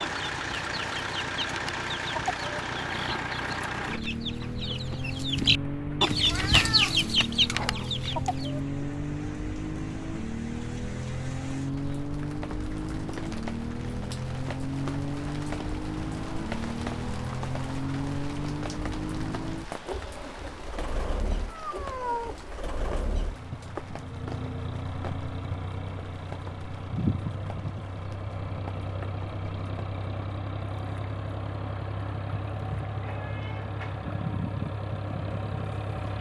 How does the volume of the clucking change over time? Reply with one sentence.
The volume of the clucking goes up.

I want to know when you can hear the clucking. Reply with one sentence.
The clucking can be heard from 0.0 to 8.6 s.